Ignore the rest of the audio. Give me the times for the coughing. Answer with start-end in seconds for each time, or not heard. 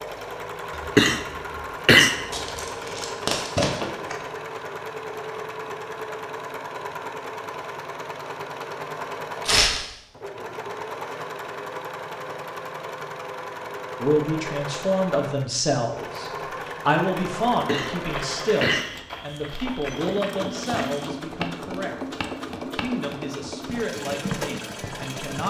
0.8-2.2, 17.5-18.9.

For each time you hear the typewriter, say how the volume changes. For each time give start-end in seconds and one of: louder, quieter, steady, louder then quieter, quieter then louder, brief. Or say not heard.
not heard.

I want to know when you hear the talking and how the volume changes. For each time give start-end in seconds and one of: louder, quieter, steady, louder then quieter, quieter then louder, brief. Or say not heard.
14.0-25.4 quieter.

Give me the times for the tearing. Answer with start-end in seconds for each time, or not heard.
2.3-4.2, 9.4-9.8, 20.6-21.2.